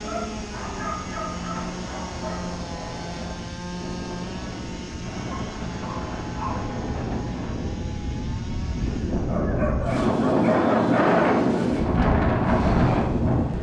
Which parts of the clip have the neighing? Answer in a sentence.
The neighing can't be heard in this clip.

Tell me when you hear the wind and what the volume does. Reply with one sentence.
You can hear the wind from 0.0 to 13.5 s, getting louder.